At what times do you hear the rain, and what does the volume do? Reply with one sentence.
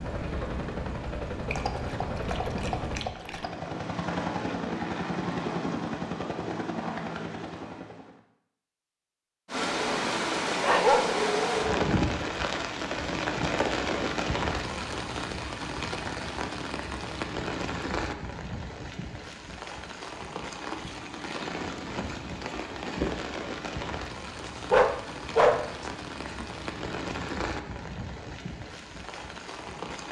The rain can be heard from 9.4 to 30.0 s, getting quieter.